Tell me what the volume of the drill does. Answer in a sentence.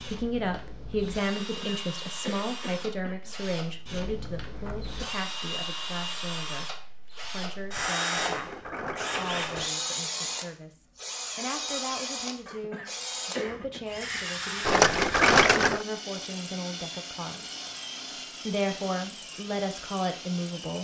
The loudness of the drill goes up, then down.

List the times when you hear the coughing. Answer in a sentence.
You can hear the coughing from 1.4 to 3.4 s and from 12.4 to 13.8 s.